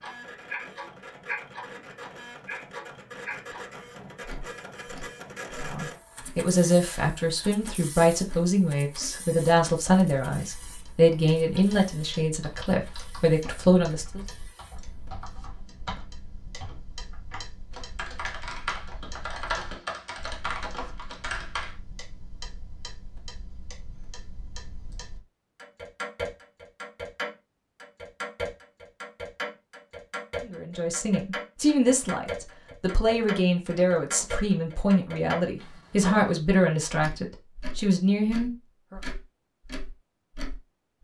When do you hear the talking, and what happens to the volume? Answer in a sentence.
You can hear the talking from 5.6 to 14.2 s, at a steady volume; and from 30.4 to 39.0 s, at a steady volume.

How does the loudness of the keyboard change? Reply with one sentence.
The volume of the keyboard goes up.